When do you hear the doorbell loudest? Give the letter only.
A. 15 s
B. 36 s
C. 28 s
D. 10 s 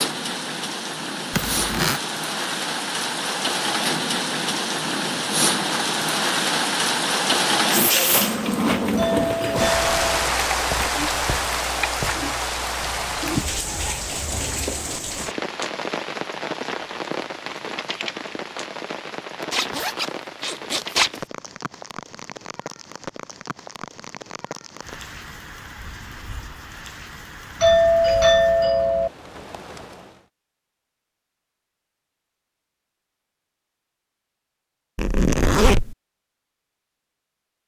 C.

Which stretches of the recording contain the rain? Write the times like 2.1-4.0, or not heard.
0.0-30.2.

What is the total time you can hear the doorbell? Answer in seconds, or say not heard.
3 s.